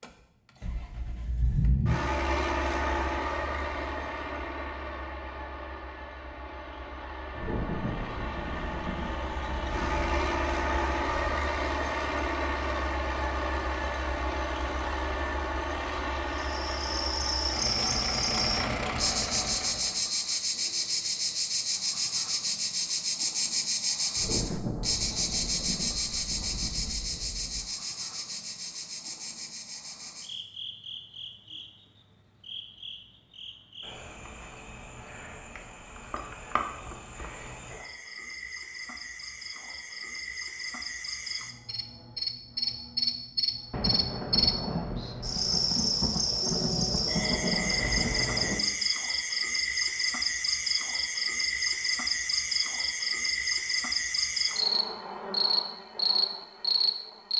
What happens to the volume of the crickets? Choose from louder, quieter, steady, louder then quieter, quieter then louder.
quieter then louder.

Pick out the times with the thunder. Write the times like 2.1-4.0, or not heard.
7.3-11.4, 24.1-27.6, 43.7-48.6.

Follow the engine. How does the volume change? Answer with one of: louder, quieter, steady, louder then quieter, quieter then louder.
quieter then louder.